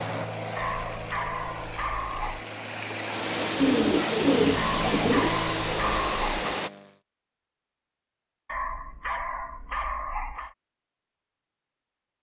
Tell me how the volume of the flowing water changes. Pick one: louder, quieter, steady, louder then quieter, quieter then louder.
louder.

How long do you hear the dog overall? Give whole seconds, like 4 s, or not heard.
6 s.